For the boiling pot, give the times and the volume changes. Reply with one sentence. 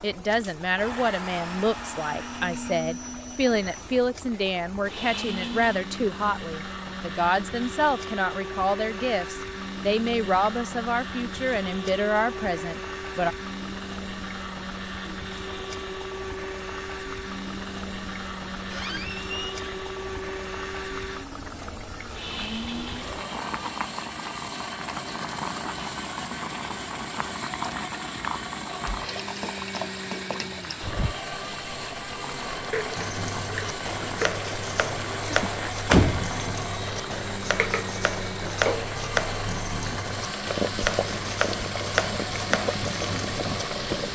The boiling pot can be heard from 0.0 to 44.0 s, getting louder.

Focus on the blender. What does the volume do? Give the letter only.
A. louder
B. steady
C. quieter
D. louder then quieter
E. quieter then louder
B.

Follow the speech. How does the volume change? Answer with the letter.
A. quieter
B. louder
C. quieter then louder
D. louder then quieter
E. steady
E.